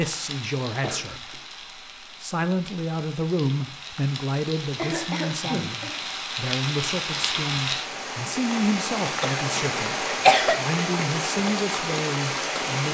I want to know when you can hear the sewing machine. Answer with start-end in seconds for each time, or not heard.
not heard.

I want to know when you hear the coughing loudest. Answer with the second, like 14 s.
10 s.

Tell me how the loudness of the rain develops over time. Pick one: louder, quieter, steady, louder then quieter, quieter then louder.
louder.